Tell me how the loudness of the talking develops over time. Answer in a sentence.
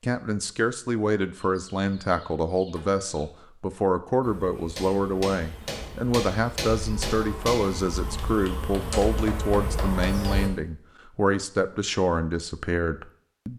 The volume of the talking stays about the same.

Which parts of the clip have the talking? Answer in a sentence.
The talking can be heard from 0.0 to 13.5 s.